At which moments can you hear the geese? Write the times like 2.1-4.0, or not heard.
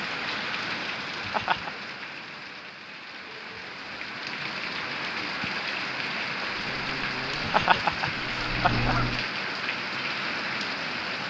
6.5-9.2.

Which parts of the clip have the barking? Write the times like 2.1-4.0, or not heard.
not heard.